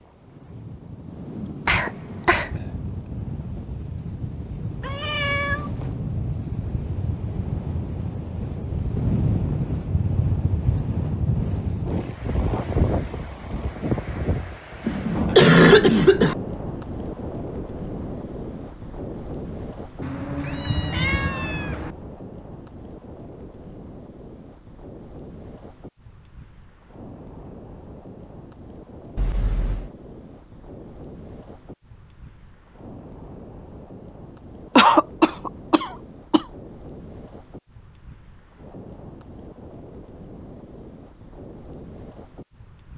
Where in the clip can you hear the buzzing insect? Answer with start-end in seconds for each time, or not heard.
not heard.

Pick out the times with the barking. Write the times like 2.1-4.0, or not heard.
not heard.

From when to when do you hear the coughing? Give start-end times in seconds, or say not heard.
1.6-2.5, 14.8-16.4, 34.8-36.5.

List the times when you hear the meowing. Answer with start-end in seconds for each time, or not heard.
4.8-6.0, 20.0-21.9, 29.1-29.9.